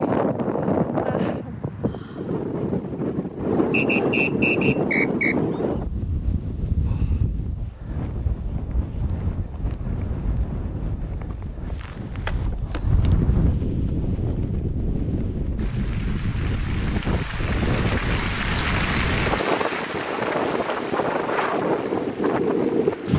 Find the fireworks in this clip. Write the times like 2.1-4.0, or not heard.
not heard.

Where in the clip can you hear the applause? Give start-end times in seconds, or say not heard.
15.6-23.1.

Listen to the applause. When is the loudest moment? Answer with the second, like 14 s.
19 s.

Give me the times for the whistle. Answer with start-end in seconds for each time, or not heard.
3.7-5.3.